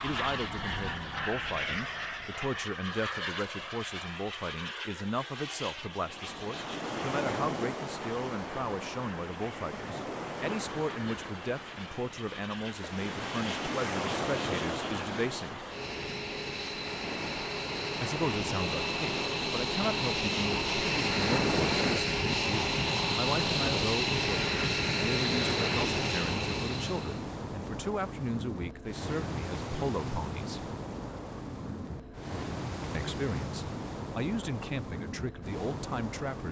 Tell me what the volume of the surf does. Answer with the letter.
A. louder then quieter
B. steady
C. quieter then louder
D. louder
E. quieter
B.